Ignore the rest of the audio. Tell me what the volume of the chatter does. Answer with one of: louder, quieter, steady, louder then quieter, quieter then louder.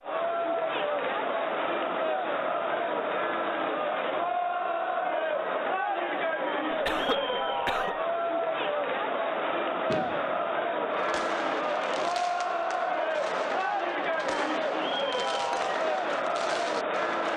steady.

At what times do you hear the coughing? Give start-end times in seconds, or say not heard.
6.7-8.0.